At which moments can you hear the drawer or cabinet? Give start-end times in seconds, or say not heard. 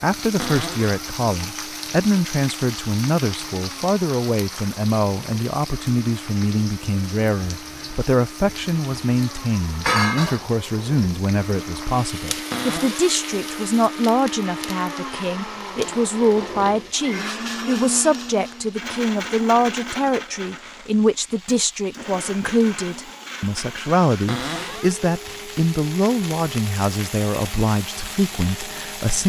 0.3-1.0, 12.5-13.2, 24.2-24.9.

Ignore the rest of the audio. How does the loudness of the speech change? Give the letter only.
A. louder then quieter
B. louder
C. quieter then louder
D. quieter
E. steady
E.